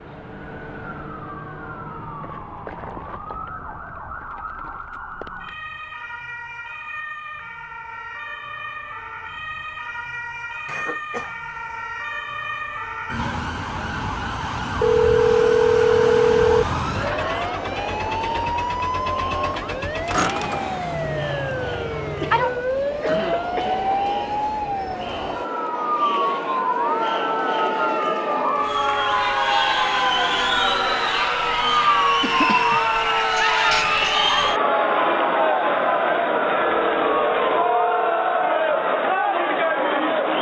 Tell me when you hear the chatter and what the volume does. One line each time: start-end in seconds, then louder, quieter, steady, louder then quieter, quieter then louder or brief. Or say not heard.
17.1-40.3 louder.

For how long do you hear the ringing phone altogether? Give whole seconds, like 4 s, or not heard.
3 s.